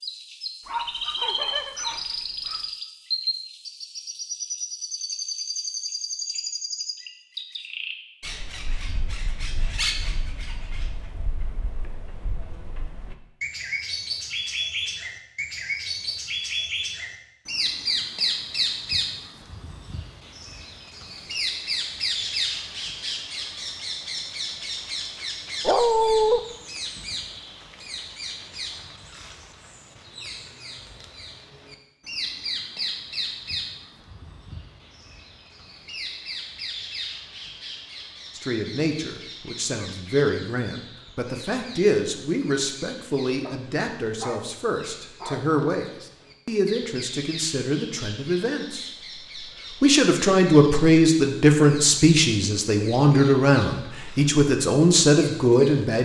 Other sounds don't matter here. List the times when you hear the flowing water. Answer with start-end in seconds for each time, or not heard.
not heard.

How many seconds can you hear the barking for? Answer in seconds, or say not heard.
5 s.